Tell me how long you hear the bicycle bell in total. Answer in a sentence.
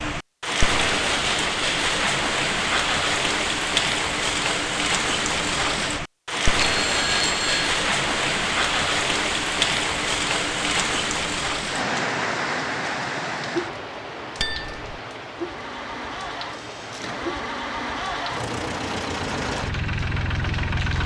The bicycle bell can be heard for 2 seconds in total.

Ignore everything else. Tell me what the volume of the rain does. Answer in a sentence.
The loudness of the rain goes down.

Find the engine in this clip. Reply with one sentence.
The engine can be heard from 15.3 to 21.0 s.